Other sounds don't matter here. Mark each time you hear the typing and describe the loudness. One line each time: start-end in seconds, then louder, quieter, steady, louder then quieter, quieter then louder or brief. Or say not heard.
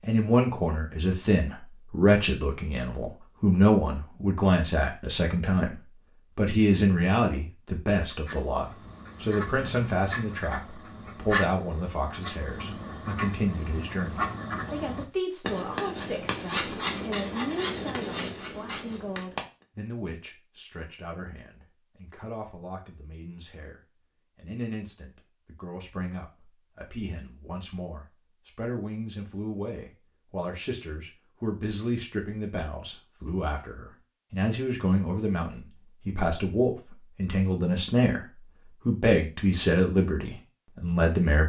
not heard.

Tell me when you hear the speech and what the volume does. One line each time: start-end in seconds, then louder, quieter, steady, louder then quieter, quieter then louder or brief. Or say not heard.
0.0-41.4 quieter then louder.